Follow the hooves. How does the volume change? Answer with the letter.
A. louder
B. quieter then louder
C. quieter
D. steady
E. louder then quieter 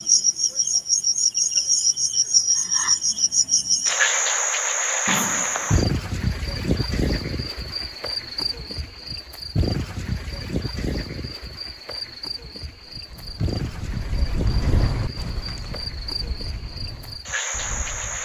E.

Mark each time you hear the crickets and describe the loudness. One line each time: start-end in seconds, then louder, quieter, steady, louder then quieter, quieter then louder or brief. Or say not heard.
0.0-18.2 quieter.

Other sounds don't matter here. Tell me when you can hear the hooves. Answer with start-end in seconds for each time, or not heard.
12.9-18.2.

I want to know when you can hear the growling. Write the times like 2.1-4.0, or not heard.
5.0-5.8.